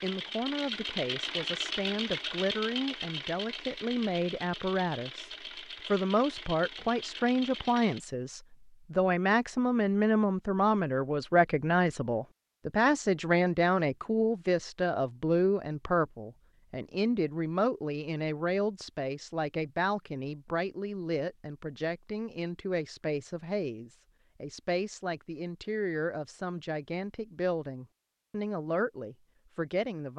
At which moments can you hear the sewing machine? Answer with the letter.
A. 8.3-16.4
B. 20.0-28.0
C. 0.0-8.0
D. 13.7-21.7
C.